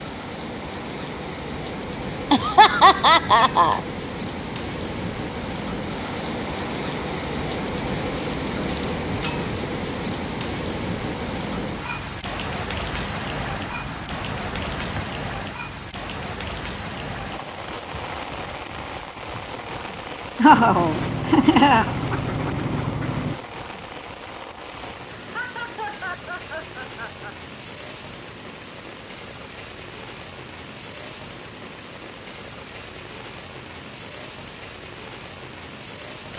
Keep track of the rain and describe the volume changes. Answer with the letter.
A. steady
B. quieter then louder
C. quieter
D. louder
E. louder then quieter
C.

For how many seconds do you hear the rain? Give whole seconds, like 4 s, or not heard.
36 s.